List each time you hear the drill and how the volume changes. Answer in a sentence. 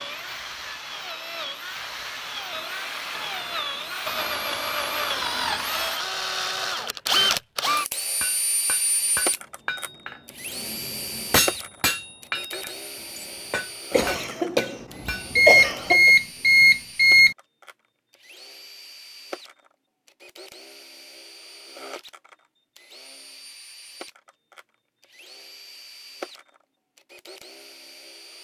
The drill can be heard from 0.0 to 28.4 s, getting quieter.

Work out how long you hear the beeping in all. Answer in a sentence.
The beeping can be heard for 2 seconds in total.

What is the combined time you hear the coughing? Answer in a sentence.
The coughing can be heard for 2 seconds in total.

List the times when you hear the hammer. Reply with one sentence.
You can hear the hammer from 8.2 to 15.3 s.